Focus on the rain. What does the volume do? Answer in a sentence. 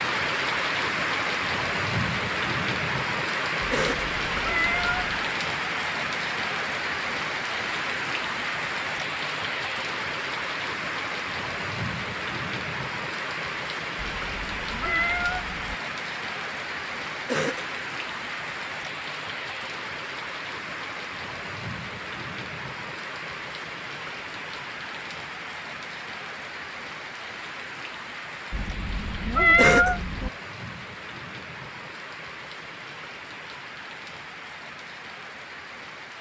The volume of the rain goes down.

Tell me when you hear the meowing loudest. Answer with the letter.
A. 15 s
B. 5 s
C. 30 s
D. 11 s
C.